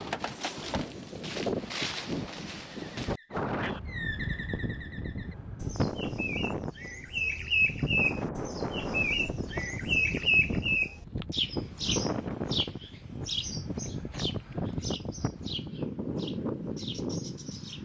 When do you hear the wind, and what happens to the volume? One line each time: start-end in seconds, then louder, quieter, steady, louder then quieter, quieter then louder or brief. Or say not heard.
0.0-17.7 steady.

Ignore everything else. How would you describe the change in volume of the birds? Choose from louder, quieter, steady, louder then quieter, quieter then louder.
louder then quieter.